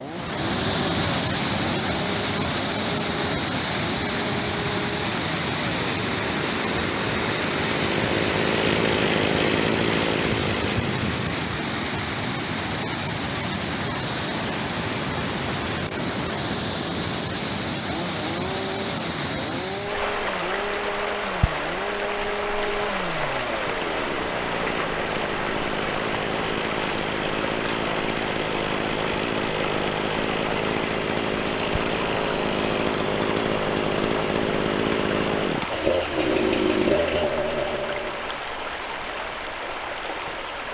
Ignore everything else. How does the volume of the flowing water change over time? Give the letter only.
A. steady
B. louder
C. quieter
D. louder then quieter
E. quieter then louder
C.